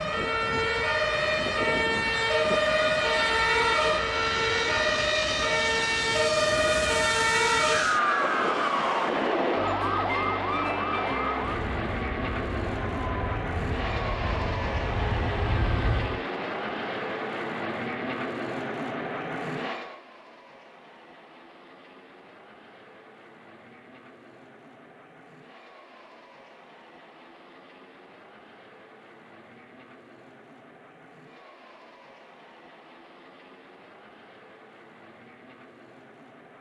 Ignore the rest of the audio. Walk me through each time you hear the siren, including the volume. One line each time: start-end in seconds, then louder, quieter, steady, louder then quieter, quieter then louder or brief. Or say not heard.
0.0-16.2 quieter.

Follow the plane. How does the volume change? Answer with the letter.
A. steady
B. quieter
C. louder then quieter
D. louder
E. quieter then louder
B.